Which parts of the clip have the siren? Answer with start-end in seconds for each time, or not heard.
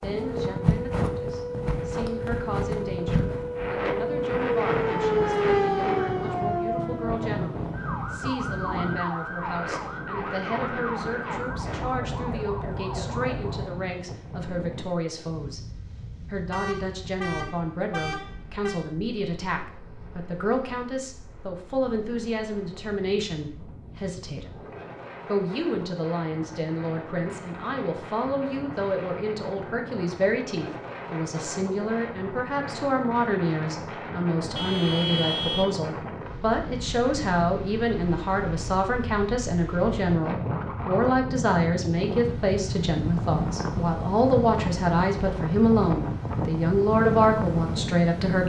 0.1-13.8.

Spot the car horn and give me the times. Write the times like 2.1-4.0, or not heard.
16.5-18.9, 34.5-35.6.